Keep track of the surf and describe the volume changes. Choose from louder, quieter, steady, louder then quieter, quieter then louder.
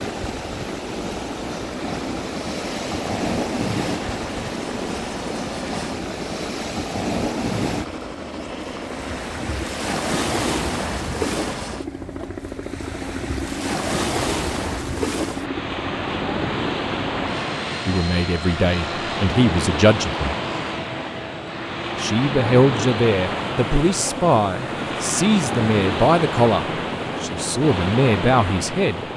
steady.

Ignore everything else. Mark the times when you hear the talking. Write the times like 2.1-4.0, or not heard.
17.9-20.4, 21.9-29.1.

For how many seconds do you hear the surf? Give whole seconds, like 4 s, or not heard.
29 s.